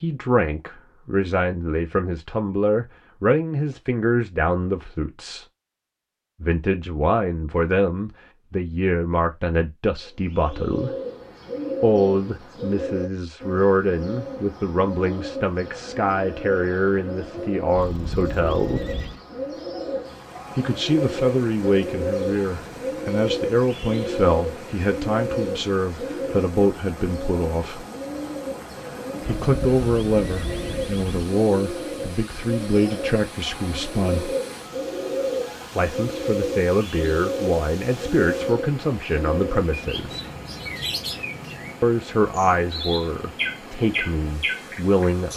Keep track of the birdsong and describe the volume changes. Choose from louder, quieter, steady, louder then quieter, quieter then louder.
steady.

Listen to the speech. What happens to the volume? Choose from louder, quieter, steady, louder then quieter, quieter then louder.
steady.